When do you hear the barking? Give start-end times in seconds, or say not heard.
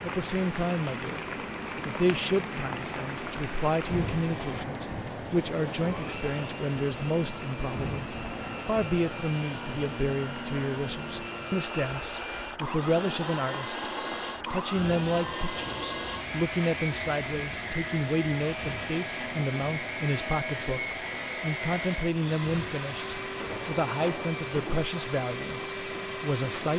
not heard.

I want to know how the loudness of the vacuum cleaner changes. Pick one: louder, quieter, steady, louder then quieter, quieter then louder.
louder.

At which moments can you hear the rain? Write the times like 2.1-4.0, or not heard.
0.0-26.7.